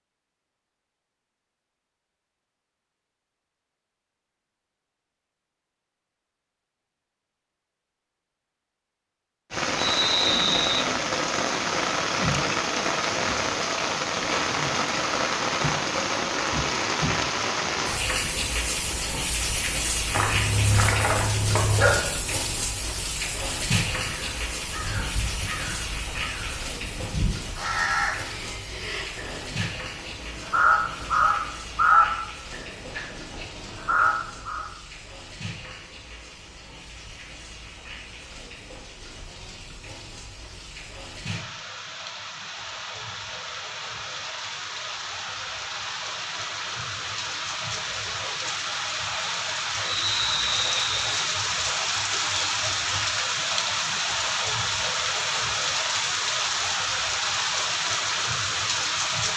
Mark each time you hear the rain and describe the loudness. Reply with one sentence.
The rain can be heard from 9.5 to 59.3 s, getting quieter then louder.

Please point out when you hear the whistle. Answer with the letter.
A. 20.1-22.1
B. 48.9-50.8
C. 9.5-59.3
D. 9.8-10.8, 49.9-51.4
D.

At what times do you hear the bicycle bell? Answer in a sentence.
The bicycle bell can't be heard in this clip.